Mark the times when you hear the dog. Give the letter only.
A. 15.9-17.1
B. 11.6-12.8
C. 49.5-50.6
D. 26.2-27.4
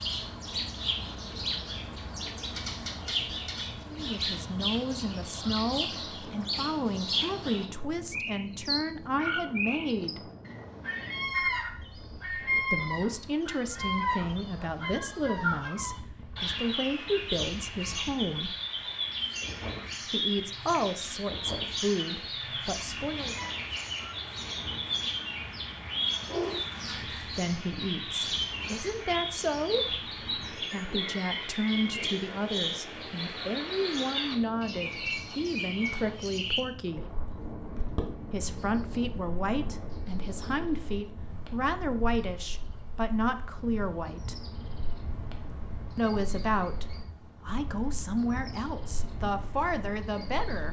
D.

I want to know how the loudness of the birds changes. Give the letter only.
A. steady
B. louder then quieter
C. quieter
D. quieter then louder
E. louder
C.